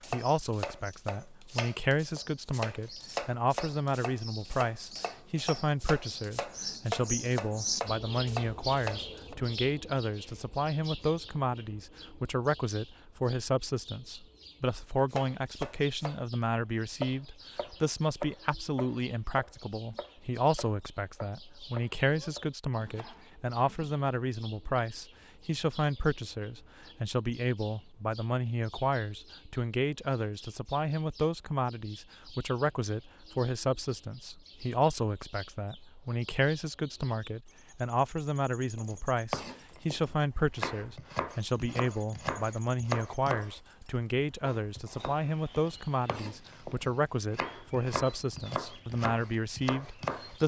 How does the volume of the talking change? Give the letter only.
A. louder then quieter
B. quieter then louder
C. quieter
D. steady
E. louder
D.